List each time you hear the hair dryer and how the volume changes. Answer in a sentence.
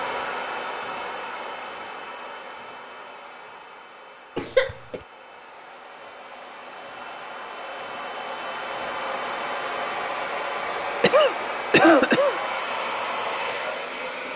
The hair dryer can be heard from 0.0 to 14.3 s, getting quieter then louder.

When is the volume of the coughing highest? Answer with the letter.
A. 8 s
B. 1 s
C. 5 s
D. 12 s
D.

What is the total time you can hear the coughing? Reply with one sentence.
The coughing can be heard for 2 seconds in total.